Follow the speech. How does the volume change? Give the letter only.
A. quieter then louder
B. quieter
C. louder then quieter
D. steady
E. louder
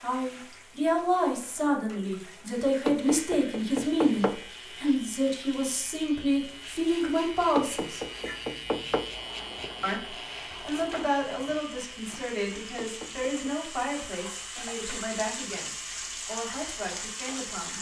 B.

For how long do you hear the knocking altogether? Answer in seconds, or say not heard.
4 s.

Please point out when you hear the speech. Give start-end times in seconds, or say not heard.
0.0-8.0, 9.8-17.7.